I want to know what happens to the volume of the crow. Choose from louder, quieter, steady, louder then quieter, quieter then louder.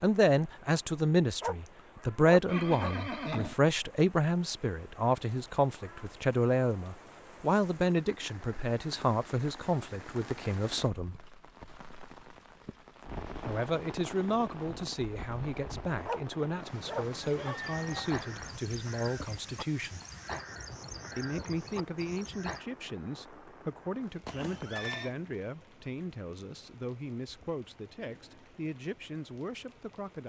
steady.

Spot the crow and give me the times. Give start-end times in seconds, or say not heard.
17.6-22.6.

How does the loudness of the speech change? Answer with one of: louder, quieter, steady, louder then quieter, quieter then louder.
quieter.